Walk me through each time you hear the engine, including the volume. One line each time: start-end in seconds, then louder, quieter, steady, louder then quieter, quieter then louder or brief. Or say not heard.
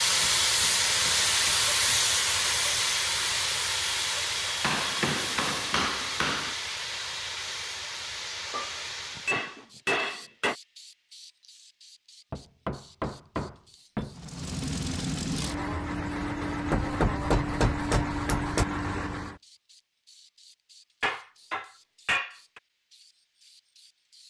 14.1-19.4 steady.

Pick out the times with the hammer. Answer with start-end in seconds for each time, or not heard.
0.2-2.0, 4.6-6.5, 8.5-10.6, 12.3-14.2, 16.7-18.6, 21.0-22.6.